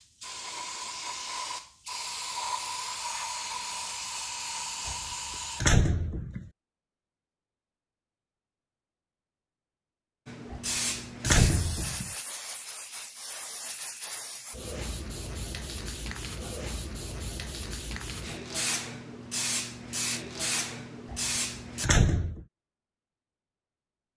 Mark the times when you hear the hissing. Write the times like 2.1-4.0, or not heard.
0.0-5.8, 10.2-21.9.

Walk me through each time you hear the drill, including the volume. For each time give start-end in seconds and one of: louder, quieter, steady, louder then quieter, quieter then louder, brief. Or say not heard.
not heard.